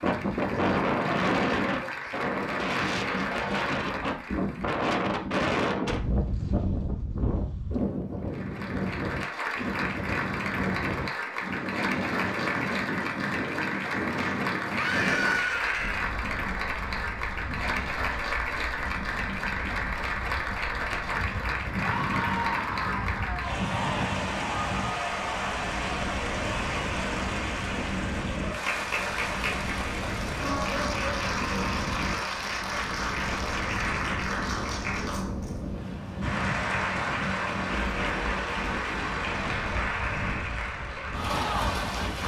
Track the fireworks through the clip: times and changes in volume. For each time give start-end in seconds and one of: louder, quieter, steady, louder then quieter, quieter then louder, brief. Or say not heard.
not heard.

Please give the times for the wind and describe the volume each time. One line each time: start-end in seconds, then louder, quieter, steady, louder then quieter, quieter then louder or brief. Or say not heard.
0.0-42.2 quieter.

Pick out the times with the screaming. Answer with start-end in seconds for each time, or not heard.
14.8-16.1, 21.8-23.6.